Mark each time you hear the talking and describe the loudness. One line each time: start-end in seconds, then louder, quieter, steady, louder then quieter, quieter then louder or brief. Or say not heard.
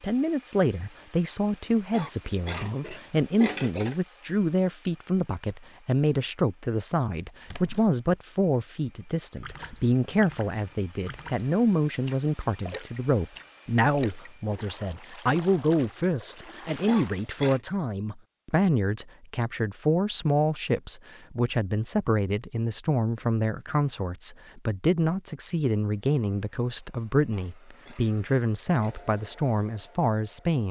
0.0-30.6 steady.